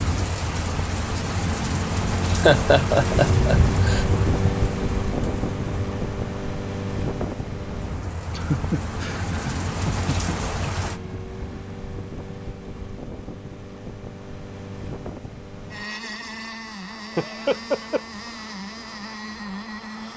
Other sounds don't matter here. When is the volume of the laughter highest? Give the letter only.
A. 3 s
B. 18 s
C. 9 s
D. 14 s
A.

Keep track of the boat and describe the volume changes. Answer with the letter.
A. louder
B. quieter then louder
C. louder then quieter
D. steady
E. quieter
E.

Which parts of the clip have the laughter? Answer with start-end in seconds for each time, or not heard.
1.7-4.0, 8.3-10.3, 17.1-18.0.